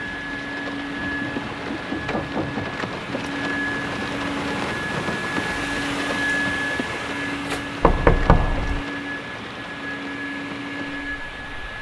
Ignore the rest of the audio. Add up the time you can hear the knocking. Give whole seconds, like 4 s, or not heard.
3 s.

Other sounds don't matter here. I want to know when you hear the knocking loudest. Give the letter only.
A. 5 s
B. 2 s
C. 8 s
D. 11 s
C.